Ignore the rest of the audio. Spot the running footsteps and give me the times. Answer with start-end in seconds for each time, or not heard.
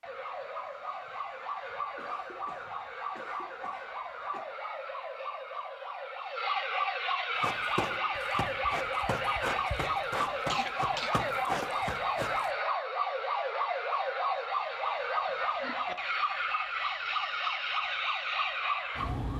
7.4-12.5.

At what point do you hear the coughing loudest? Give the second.
11 s.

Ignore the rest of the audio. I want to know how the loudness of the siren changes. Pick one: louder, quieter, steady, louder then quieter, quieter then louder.
louder.